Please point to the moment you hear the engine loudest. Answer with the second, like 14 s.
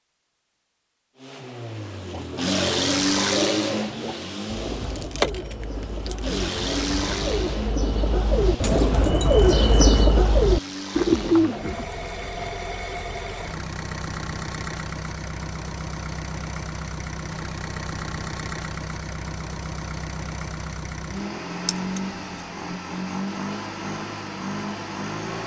3 s.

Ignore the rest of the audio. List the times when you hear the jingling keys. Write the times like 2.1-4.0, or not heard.
4.8-6.2, 8.6-10.1, 21.6-22.4.